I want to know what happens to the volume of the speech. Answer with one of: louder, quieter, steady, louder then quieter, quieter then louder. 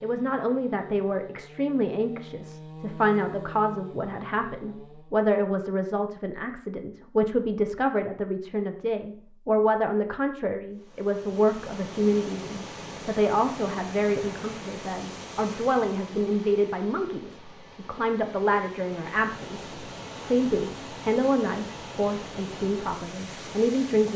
steady.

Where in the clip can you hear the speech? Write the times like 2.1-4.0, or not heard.
0.0-24.1.